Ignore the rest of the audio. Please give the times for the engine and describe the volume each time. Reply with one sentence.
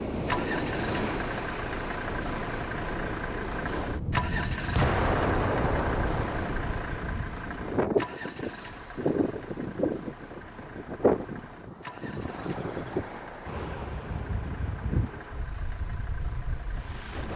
The engine can be heard from 0.1 to 17.3 s, getting quieter.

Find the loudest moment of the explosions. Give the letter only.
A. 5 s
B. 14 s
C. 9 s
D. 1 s
A.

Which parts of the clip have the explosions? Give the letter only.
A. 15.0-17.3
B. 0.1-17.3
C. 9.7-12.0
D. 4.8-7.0
D.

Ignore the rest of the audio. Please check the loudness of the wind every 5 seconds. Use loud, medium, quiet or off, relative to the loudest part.
loud, loud, loud, medium.